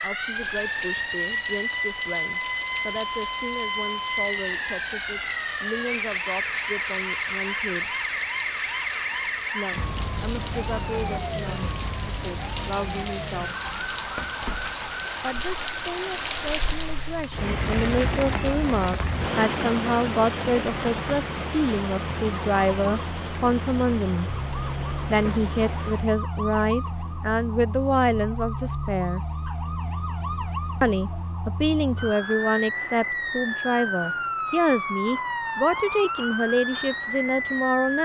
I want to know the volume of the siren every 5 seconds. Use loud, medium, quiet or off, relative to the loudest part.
loud, loud, medium, medium, medium, medium, loud, loud.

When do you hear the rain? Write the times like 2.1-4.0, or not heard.
0.0-26.1.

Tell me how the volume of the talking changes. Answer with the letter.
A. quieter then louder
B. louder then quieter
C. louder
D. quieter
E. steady
C.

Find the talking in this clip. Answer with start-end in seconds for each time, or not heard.
0.0-8.0, 9.5-13.6, 15.2-24.3, 25.1-29.2, 30.8-38.0.